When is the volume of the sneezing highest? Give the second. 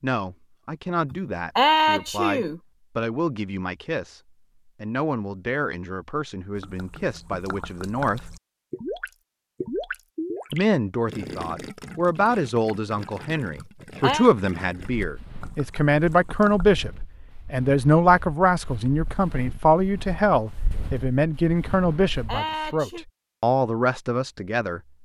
2 s.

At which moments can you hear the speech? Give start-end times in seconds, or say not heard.
0.0-4.2, 4.8-8.2, 10.5-24.8.